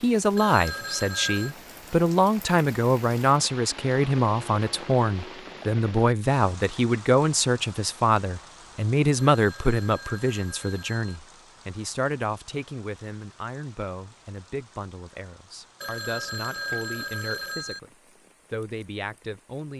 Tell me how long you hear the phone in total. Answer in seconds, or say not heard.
5 s.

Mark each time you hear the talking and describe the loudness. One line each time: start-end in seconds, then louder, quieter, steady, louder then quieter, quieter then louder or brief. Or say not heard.
0.0-17.9 quieter
18.5-19.7 brief.